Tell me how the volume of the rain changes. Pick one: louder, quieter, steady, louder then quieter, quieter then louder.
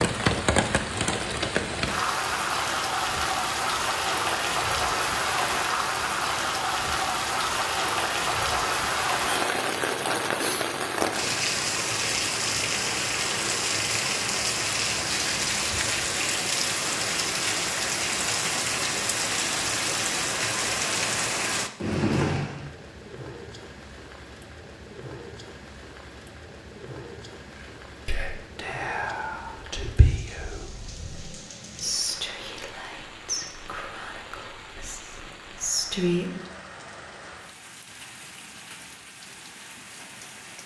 quieter.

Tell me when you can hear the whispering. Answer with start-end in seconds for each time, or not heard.
27.6-36.5.